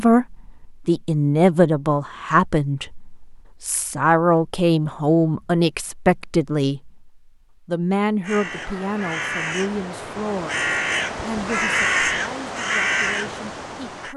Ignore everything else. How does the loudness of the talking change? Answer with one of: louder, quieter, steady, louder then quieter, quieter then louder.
quieter.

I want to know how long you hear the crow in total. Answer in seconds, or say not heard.
6 s.